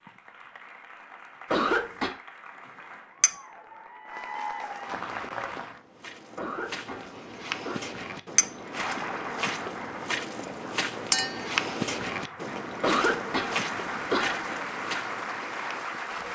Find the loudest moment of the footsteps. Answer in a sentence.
The volume of the footsteps peaks at 12 seconds.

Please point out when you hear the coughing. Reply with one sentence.
You can hear the coughing from 1.5 to 2.1 s, from 6.3 to 7.8 s and from 12.8 to 14.6 s.